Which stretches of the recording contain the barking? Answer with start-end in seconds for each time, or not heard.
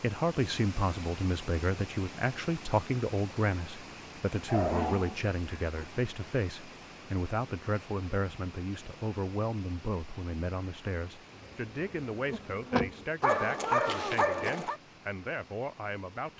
4.5-5.8, 13.2-14.8.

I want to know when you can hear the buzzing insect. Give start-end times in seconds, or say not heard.
11.3-13.1.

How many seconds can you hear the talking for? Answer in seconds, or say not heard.
16 s.